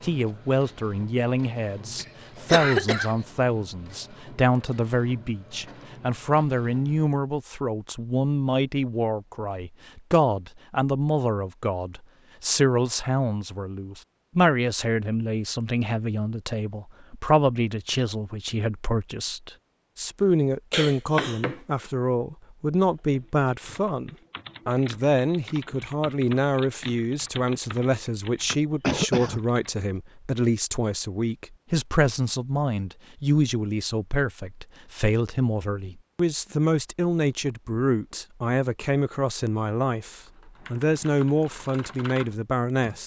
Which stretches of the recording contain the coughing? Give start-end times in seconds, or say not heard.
1.9-3.1, 20.7-21.6, 28.8-29.4.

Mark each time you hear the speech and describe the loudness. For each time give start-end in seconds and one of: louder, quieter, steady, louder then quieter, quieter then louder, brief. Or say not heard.
0.0-43.0 steady.